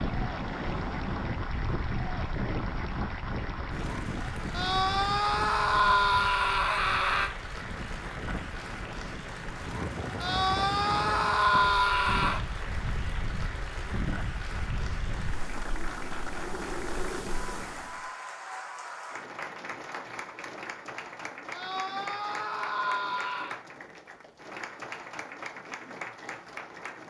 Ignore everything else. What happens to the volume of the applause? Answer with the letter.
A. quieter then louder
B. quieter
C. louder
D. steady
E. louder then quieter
D.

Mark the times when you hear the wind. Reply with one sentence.
The wind can be heard from 0.0 to 18.1 s.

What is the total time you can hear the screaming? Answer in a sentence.
You can hear the screaming for 7 seconds altogether.